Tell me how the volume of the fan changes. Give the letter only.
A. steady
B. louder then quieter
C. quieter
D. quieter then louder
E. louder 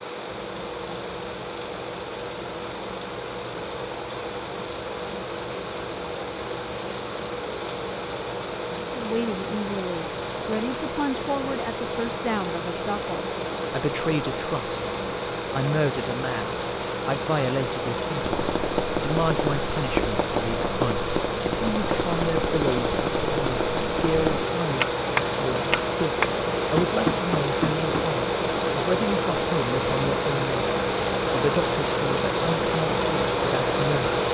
E.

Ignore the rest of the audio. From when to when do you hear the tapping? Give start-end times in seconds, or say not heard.
18.2-28.1.